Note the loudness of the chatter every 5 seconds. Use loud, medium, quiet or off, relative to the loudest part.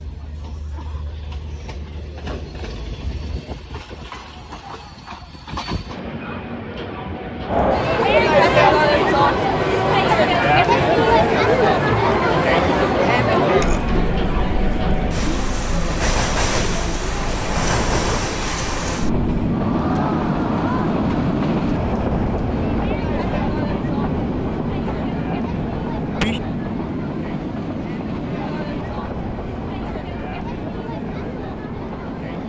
off, loud, loud, quiet, quiet, quiet, quiet.